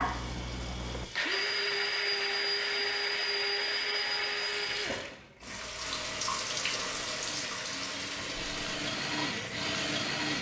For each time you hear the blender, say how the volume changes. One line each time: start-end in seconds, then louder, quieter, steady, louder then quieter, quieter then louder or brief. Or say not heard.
0.0-10.3 quieter then louder.